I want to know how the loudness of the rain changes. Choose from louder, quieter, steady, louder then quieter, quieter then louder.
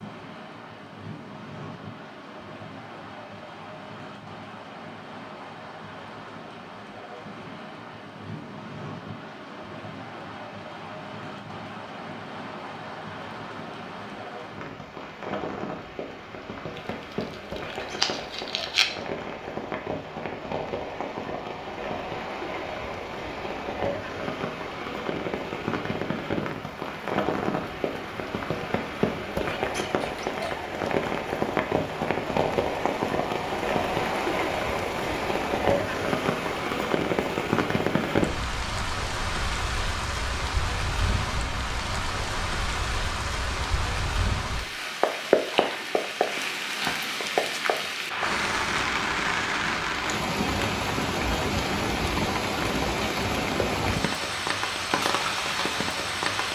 louder.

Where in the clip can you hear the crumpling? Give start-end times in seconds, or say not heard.
16.8-18.9.